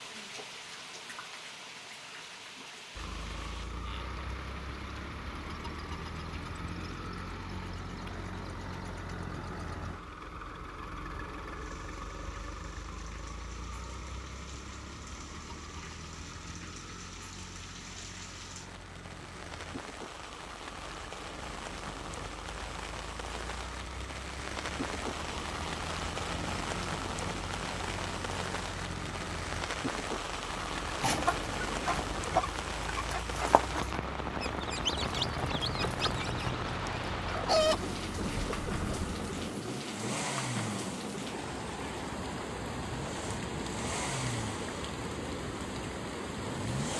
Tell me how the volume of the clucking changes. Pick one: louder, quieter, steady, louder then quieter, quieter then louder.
quieter.